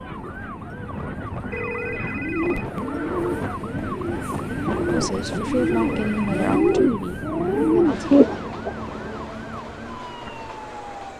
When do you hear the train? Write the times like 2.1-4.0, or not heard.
0.0-11.1.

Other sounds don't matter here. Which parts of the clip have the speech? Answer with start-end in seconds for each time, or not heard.
4.9-8.3.